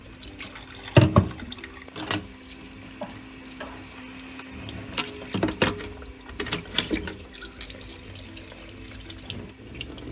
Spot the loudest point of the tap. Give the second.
1 s.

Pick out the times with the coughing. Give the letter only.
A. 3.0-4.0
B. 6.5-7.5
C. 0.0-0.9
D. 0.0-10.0
A.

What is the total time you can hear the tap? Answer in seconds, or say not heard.
10 s.